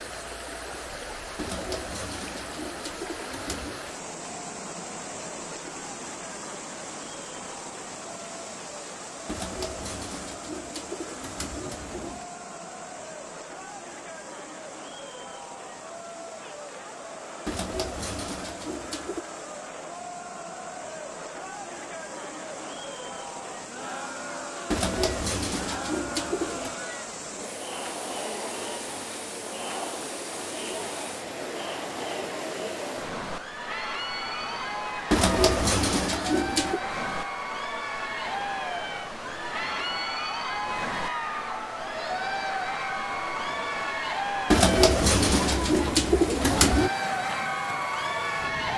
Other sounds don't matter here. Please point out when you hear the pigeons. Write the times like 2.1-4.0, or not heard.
1.4-3.9, 9.2-12.2, 17.4-19.2, 24.7-26.8, 35.1-36.8, 44.5-46.9.